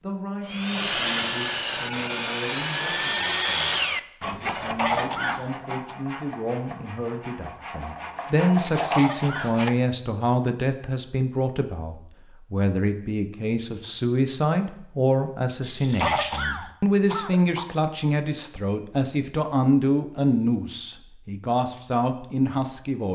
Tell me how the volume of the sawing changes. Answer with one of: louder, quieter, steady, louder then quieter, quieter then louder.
quieter then louder.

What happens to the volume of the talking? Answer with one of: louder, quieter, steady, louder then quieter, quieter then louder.
louder.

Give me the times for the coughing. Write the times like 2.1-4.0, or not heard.
4.7-6.0, 8.8-9.6, 15.9-17.6.